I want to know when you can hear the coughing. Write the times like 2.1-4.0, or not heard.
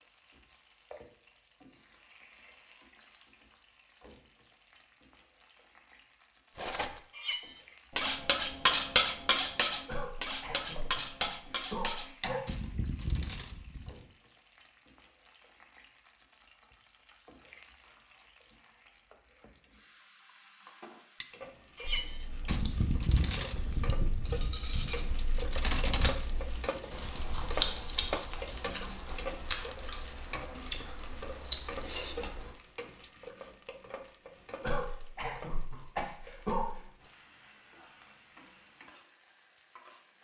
9.8-12.4, 34.6-36.9.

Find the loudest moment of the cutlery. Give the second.
9 s.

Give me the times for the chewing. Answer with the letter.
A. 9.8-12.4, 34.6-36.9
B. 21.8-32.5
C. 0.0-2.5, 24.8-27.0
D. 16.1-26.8
B.